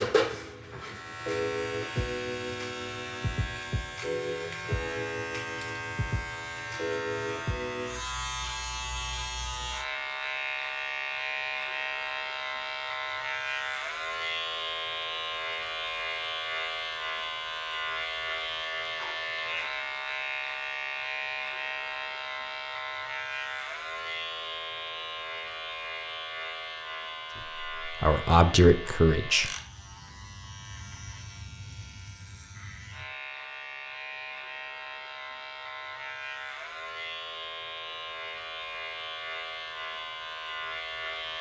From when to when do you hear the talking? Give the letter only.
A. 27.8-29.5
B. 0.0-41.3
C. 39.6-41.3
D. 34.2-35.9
A.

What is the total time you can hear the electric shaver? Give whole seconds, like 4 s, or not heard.
41 s.